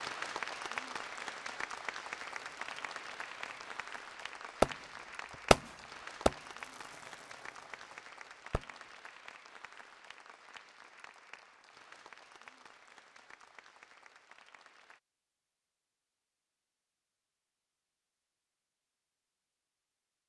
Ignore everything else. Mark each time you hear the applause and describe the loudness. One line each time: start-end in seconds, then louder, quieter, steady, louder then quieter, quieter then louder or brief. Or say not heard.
0.0-15.0 quieter.